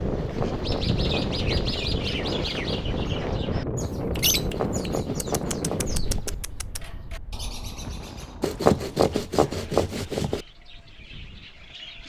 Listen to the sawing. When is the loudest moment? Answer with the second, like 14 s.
9 s.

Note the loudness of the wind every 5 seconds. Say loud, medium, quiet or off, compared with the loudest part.
loud, medium, quiet.